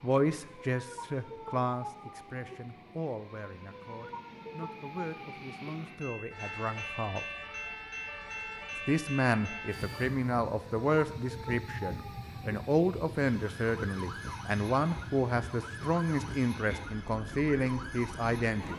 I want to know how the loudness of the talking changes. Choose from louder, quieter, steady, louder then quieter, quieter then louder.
quieter then louder.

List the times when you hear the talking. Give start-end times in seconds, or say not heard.
0.0-7.2, 8.8-18.7.